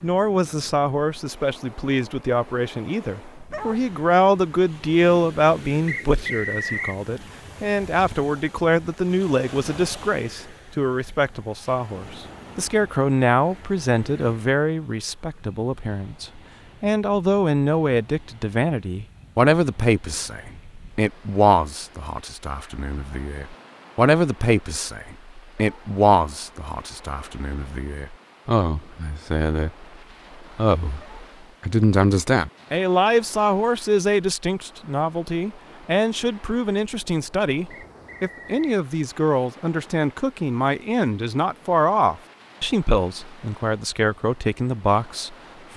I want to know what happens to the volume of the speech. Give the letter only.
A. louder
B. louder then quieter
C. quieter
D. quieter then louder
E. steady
E.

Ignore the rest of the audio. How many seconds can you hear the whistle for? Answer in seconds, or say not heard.
2 s.